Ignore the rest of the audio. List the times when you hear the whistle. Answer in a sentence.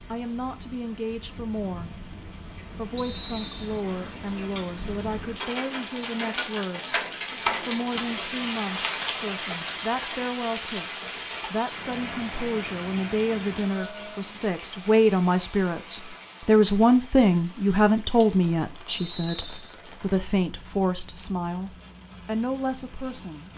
The whistle can be heard from 3.0 to 3.8 s and from 18.9 to 19.8 s.